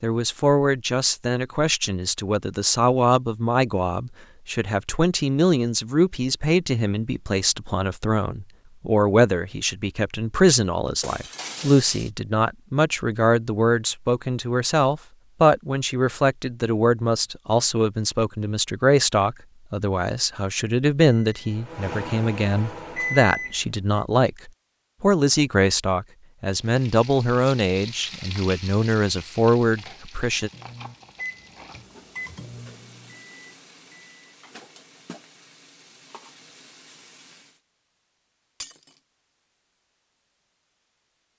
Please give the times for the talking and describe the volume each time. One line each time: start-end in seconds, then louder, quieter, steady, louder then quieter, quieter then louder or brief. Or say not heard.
0.0-30.5 steady.